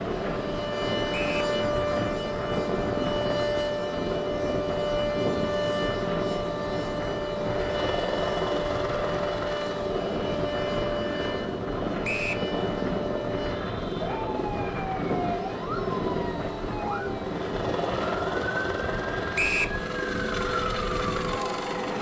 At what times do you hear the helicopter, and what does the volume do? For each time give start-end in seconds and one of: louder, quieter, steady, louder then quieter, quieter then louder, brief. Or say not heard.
0.0-21.9 steady.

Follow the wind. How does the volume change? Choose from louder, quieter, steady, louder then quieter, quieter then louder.
steady.